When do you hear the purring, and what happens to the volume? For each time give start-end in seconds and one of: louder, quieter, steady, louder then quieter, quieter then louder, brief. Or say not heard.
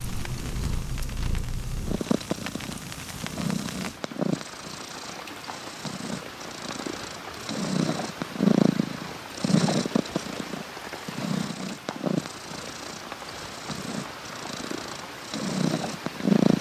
0.0-16.5 louder then quieter.